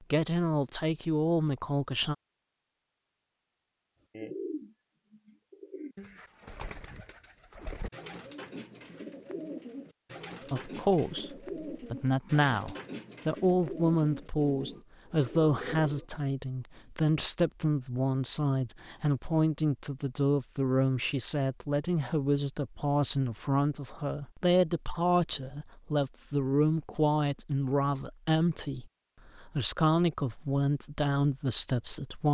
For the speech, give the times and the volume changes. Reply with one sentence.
The speech can be heard briefly from 0.1 to 2.1 s; and from 10.5 to 32.2 s, at a steady volume.